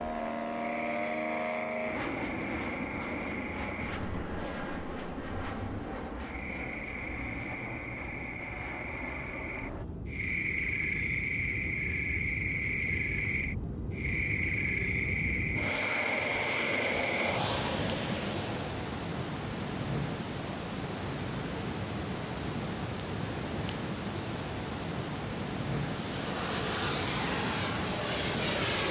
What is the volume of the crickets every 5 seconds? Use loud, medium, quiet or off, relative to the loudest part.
medium, medium, loud, loud, loud, loud.